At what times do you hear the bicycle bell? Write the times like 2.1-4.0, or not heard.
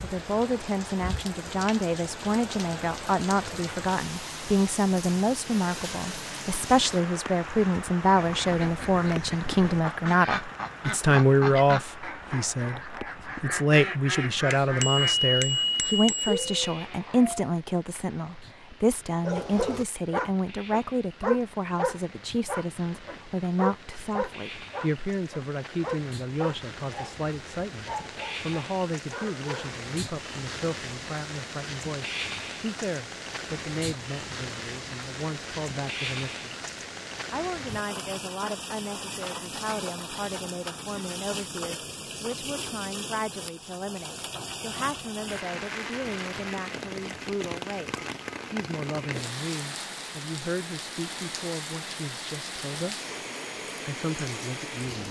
14.5-16.9.